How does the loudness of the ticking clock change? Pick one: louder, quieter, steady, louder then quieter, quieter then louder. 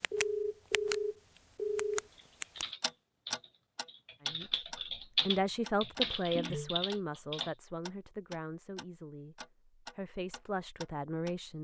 quieter.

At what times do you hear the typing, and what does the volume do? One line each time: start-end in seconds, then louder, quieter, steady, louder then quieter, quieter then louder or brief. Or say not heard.
2.1-7.5 louder then quieter.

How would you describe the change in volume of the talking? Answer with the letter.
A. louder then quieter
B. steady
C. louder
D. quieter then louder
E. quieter
D.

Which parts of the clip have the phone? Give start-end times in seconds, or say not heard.
0.1-2.1, 6.3-6.8.